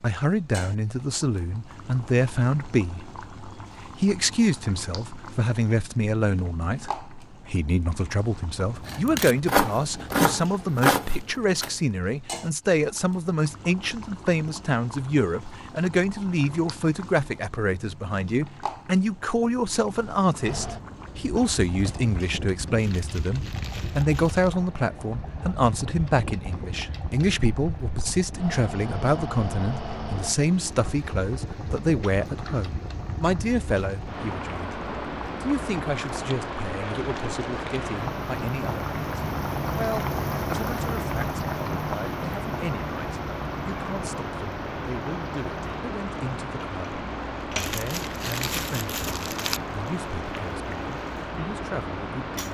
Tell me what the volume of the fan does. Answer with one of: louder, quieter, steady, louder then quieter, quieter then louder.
louder.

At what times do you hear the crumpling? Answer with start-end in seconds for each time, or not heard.
22.8-24.6, 47.5-49.6.